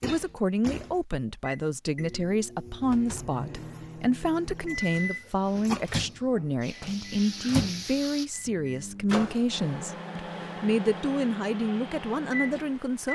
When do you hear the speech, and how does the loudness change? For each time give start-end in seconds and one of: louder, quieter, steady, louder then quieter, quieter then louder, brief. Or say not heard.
0.0-13.1 steady.